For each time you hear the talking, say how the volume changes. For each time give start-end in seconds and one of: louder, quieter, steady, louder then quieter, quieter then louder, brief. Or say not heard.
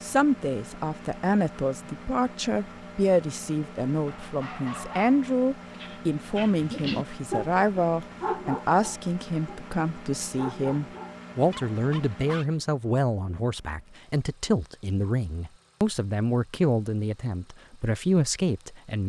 0.0-19.0 steady.